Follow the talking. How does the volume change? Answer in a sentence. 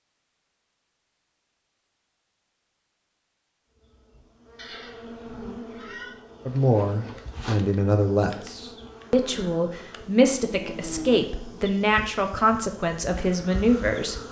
The volume of the talking stays about the same.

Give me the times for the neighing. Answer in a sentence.
You can hear the neighing from 4.5 to 6.2 s.